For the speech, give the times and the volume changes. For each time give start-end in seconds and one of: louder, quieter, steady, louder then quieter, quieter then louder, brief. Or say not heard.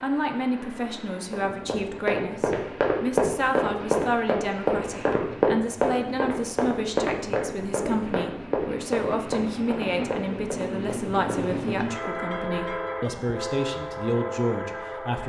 0.0-15.2 steady.